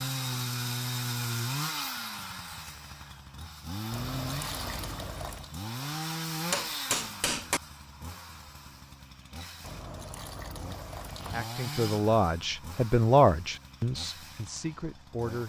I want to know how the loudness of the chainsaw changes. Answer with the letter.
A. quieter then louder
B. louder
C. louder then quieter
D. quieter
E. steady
D.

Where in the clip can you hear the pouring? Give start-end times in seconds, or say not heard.
3.9-5.5, 9.6-11.4.